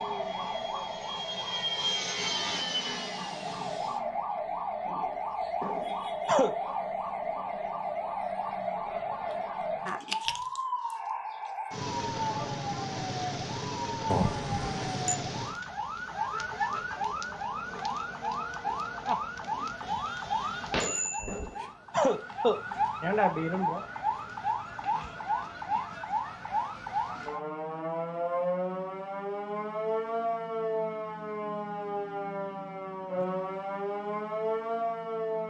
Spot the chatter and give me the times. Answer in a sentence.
You can't hear the chatter here.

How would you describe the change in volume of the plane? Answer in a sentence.
The volume of the plane goes up, then down.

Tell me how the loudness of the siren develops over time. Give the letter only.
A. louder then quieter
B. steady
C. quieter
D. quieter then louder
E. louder
B.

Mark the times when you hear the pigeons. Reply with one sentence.
You can't hear the pigeons here.